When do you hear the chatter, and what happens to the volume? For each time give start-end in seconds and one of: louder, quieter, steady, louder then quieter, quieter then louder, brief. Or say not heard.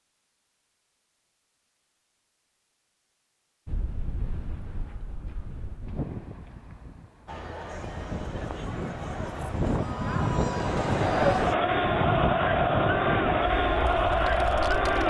7.2-15.0 louder.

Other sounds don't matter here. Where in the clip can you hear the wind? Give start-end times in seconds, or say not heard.
3.6-15.0.